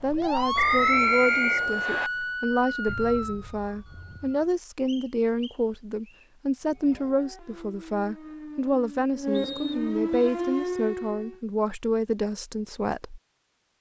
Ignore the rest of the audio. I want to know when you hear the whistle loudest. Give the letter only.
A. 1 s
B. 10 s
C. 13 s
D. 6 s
A.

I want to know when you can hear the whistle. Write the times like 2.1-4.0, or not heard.
0.6-2.1, 4.8-6.2, 9.3-10.3.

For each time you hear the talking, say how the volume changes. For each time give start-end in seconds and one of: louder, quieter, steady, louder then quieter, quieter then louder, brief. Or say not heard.
0.0-13.2 steady.